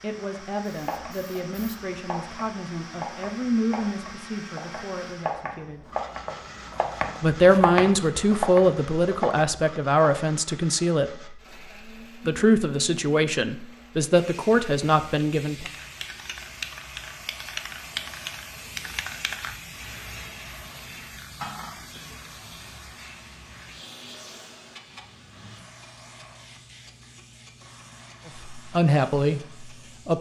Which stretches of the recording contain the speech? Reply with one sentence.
You can hear the speech from 0.0 to 5.8 s, from 7.2 to 11.1 s, from 12.2 to 15.7 s and from 28.5 to 30.1 s.